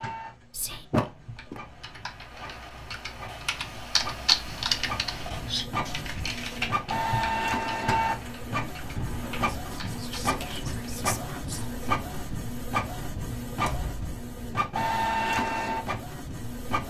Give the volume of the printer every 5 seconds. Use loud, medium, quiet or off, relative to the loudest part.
quiet, loud, loud, loud.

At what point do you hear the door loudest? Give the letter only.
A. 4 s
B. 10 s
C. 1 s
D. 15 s
C.